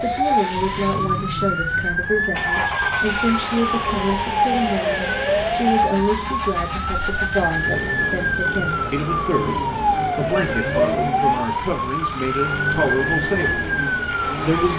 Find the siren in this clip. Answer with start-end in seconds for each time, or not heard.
0.0-14.7.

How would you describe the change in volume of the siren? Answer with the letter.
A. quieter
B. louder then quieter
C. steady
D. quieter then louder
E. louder
C.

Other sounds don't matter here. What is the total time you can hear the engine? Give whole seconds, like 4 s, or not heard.
15 s.